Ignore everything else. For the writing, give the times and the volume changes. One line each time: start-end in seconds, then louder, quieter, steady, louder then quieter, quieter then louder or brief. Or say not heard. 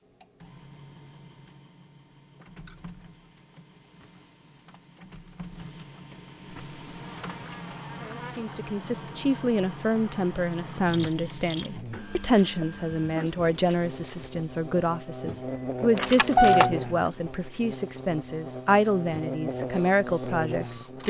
not heard.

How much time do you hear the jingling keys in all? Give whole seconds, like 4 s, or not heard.
2 s.